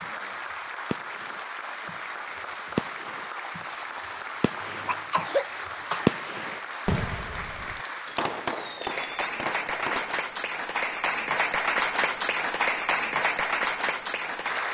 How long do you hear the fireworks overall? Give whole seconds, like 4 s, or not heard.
10 s.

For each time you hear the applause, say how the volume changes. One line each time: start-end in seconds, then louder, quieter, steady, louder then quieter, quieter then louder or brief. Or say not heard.
0.0-14.6 louder.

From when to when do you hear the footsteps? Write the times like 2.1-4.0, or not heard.
not heard.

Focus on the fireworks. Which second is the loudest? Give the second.
6 s.